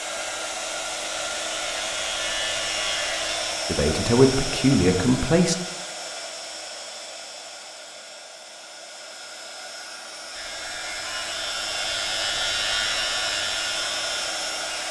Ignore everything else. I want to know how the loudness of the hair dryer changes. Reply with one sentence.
The volume of the hair dryer goes down, then up.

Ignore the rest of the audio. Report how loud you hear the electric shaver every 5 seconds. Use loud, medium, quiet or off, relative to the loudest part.
loud, off, loud.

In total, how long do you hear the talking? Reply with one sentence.
The talking can be heard for 2 seconds in total.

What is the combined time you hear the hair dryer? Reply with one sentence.
You can hear the hair dryer for 15 seconds altogether.